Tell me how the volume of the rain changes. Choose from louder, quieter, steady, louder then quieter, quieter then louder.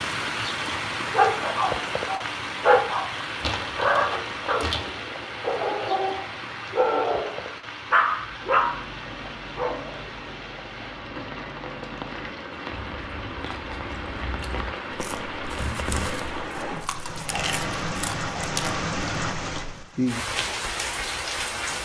quieter then louder.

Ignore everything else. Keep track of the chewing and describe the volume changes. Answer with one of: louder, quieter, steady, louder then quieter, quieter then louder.
louder.